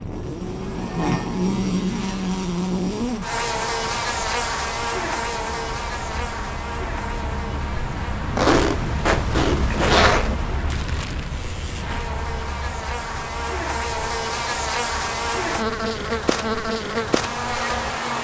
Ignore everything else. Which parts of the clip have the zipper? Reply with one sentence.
You can hear the zipper from 8.3 to 10.3 s.